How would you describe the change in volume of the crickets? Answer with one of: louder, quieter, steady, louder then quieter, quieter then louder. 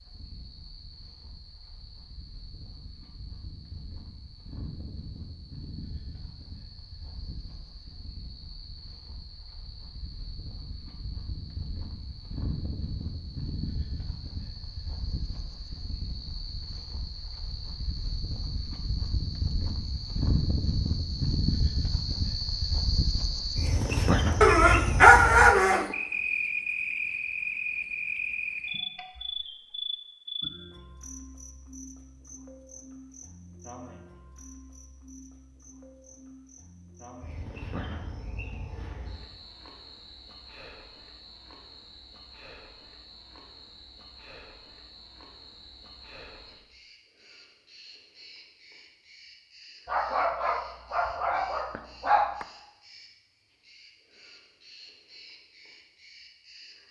louder then quieter.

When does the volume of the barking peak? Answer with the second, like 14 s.
25 s.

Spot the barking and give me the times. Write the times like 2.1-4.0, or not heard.
24.4-25.9, 49.9-52.5.